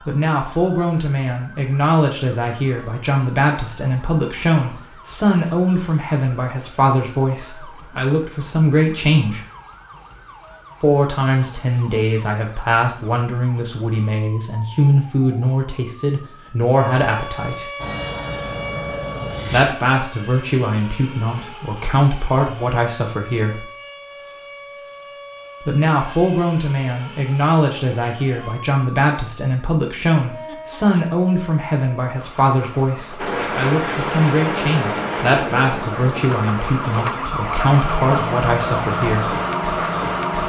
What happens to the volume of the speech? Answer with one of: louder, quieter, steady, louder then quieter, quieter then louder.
steady.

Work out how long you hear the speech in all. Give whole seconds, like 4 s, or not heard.
34 s.